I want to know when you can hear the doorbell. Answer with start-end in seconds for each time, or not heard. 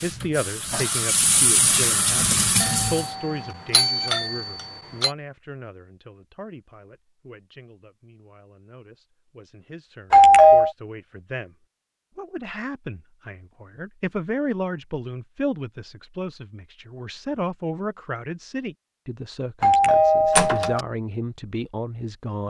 2.6-5.1, 10.1-10.7, 19.6-20.8.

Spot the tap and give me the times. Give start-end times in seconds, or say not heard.
0.0-3.1.